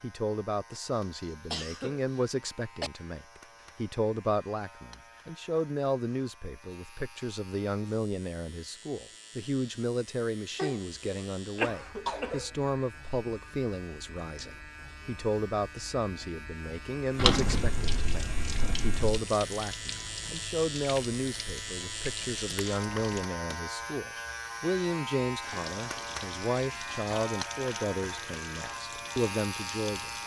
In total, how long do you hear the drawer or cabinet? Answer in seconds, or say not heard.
2 s.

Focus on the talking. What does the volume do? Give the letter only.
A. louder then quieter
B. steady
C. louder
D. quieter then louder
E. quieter
B.